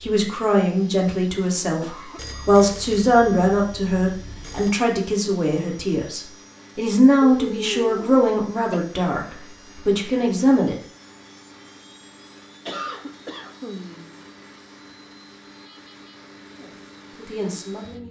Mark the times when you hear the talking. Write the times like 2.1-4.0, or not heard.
0.0-10.8, 16.6-18.0.